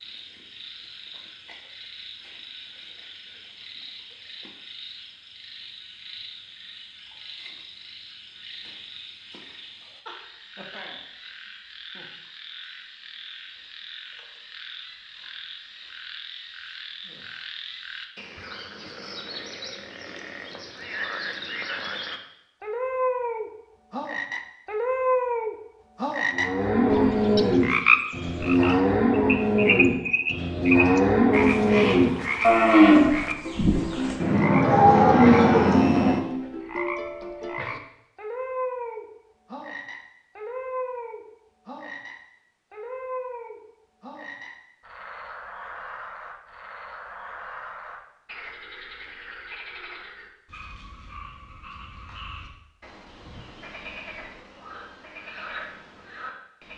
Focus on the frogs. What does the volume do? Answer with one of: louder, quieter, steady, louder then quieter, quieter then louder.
louder then quieter.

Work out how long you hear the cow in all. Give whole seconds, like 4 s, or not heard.
10 s.